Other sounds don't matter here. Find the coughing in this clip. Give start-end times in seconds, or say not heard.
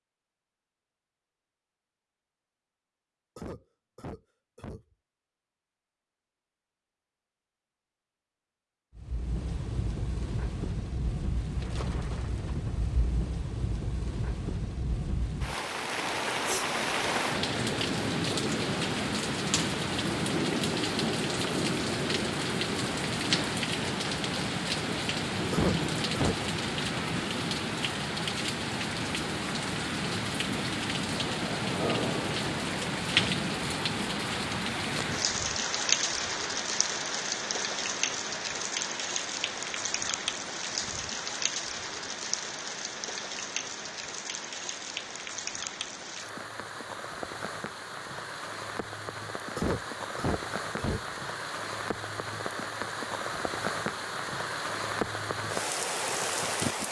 3.4-4.8, 25.5-26.4, 49.5-51.0.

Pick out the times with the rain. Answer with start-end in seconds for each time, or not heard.
8.9-56.8.